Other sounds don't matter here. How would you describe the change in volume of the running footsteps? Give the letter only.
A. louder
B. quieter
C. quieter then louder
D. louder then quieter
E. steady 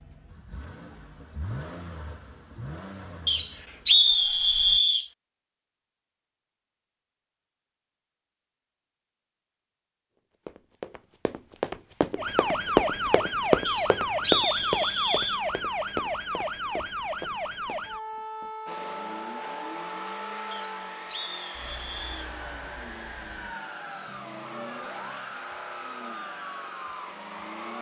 D.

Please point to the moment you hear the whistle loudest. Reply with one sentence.
The volume of the whistle peaks at 4 seconds.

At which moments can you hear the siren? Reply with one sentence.
The siren can be heard from 12.2 to 27.5 s.